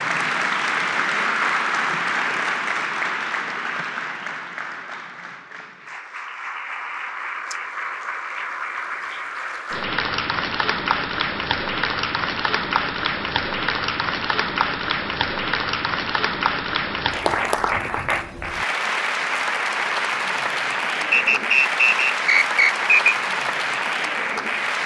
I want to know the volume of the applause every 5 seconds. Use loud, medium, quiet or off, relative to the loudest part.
loud, medium, loud, loud, loud.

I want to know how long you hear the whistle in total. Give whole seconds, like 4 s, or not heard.
2 s.